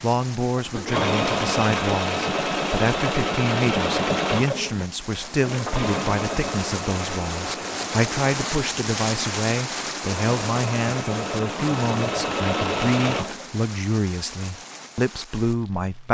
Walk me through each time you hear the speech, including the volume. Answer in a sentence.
The speech can be heard from 0.0 to 16.1 s, at a steady volume.